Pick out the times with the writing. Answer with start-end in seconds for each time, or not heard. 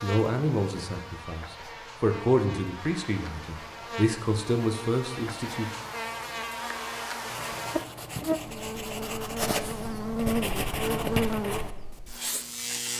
7.3-12.8.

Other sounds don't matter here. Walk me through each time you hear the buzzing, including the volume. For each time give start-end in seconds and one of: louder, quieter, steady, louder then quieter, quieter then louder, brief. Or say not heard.
0.0-12.9 louder.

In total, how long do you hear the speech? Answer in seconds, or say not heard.
6 s.